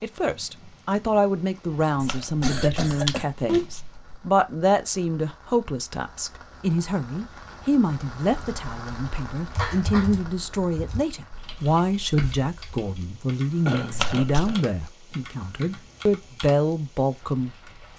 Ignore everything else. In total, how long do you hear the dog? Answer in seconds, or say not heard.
not heard.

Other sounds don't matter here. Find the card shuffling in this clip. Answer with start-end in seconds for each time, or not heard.
1.9-4.0, 13.9-14.6.